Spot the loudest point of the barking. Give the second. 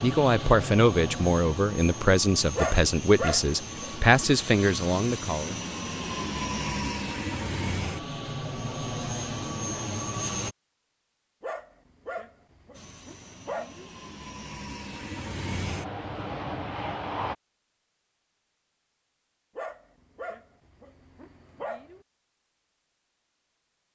3 s.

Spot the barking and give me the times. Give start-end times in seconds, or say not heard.
2.5-4.0, 11.4-13.9, 19.6-22.1.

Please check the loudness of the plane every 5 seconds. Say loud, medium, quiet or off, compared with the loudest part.
loud, loud, medium, loud, off.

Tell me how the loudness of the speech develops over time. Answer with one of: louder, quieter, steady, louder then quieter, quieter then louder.
steady.